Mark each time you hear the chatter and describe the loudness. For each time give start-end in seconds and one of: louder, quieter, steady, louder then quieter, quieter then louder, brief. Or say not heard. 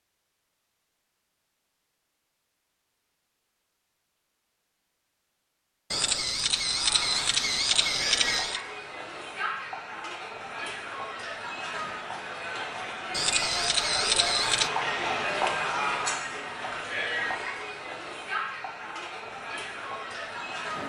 6.5-20.8 louder then quieter.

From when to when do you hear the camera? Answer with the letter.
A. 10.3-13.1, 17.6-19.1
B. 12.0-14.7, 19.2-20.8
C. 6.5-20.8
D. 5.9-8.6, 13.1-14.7
D.